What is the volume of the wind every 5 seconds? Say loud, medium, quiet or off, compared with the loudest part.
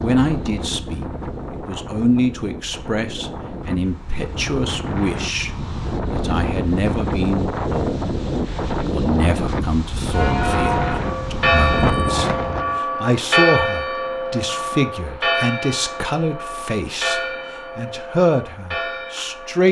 medium, loud, loud, off.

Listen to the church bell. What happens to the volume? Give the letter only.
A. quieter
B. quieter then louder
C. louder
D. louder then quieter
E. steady
A.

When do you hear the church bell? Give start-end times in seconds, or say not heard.
10.1-19.6.